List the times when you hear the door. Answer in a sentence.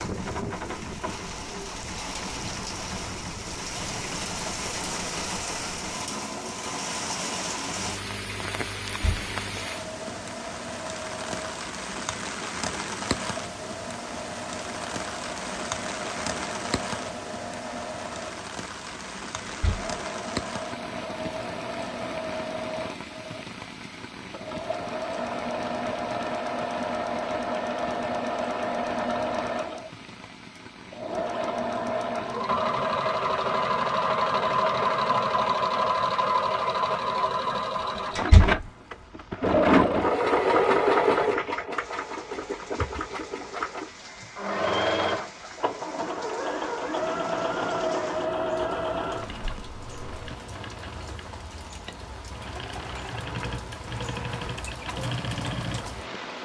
You can hear the door from 8.8 to 9.3 s, from 19.4 to 19.9 s and from 38.1 to 38.6 s.